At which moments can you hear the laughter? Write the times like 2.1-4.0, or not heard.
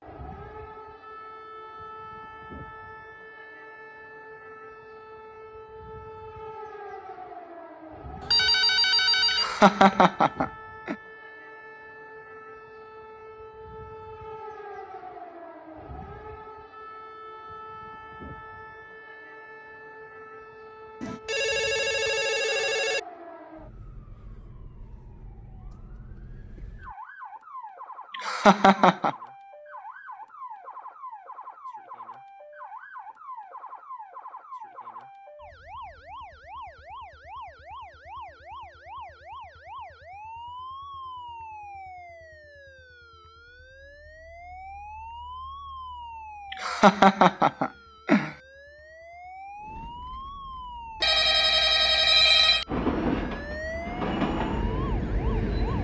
9.3-10.9, 28.1-29.1, 46.5-48.3.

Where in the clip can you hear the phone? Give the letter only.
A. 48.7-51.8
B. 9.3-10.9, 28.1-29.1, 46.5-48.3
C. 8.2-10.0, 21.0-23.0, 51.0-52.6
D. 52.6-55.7
C.